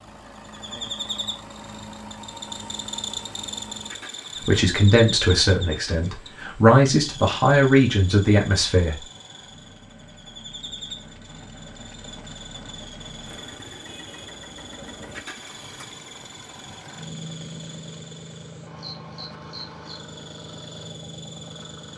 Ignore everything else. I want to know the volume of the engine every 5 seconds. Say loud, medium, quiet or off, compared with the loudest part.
loud, medium, loud, loud, loud.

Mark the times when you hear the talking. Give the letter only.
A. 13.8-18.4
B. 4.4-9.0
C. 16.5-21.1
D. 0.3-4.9
B.